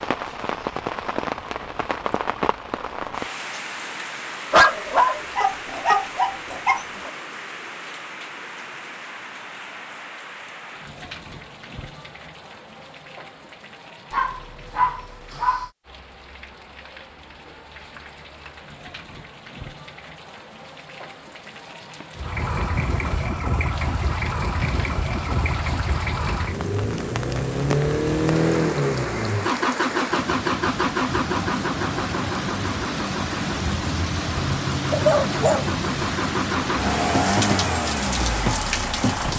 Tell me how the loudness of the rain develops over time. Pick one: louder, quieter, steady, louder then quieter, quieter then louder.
quieter then louder.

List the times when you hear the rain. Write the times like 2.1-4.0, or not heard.
0.0-39.3.